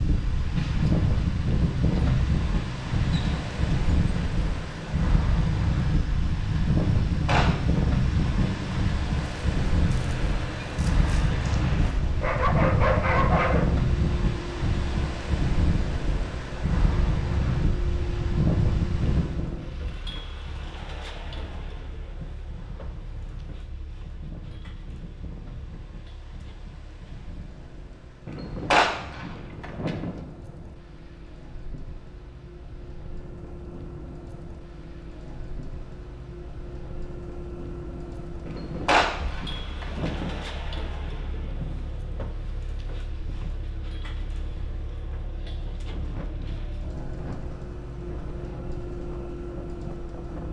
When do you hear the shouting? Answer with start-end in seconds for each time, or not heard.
not heard.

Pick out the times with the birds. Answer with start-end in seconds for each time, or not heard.
not heard.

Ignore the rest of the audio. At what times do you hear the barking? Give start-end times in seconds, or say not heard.
12.2-13.8.